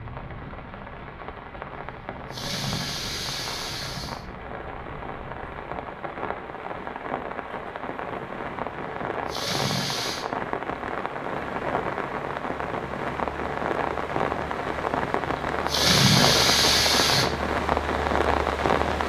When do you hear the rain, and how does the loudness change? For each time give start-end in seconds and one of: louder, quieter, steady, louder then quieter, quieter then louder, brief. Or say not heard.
0.0-19.0 louder.